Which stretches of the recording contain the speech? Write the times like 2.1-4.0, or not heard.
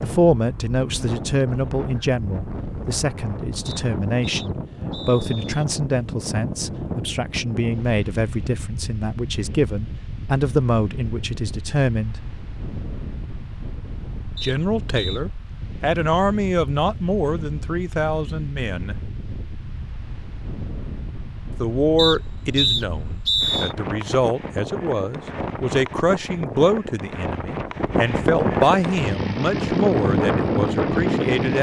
0.0-12.2, 14.4-18.9, 21.6-31.5.